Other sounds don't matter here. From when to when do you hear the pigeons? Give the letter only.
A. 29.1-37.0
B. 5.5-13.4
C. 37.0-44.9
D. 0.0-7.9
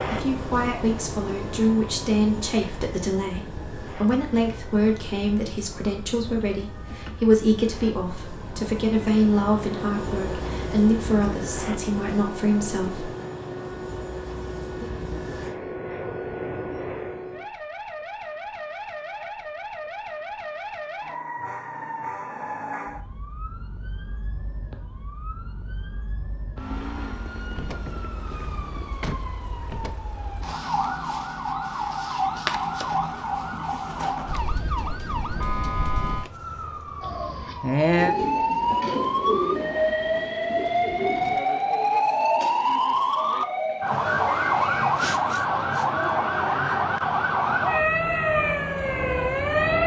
C.